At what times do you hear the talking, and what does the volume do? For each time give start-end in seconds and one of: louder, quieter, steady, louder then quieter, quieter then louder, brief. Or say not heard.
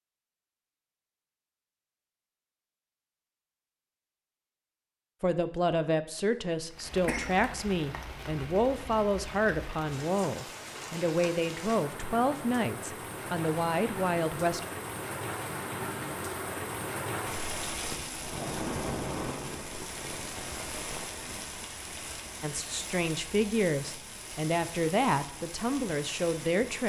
5.2-14.7 steady
22.4-26.8 steady.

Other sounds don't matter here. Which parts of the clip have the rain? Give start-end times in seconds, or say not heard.
6.7-26.8.